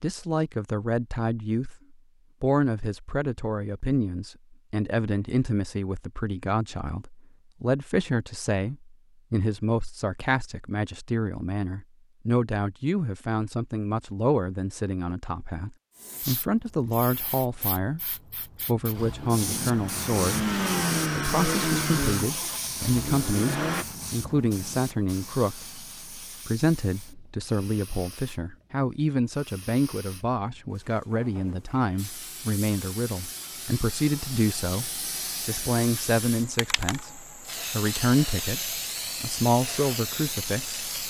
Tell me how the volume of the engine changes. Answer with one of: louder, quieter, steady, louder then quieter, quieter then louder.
louder then quieter.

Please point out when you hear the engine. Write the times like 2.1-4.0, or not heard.
18.9-23.9.